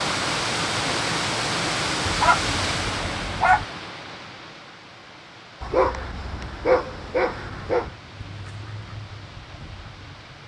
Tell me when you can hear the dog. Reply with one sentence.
You can hear the dog from 2.0 to 3.6 s and from 5.6 to 7.9 s.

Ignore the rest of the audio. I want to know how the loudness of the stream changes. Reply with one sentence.
The volume of the stream goes down.